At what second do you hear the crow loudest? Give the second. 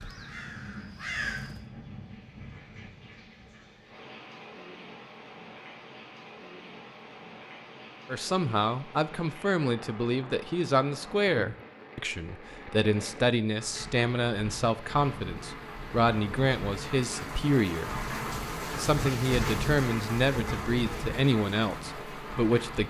1 s.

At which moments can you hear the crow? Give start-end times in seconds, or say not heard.
0.0-1.6.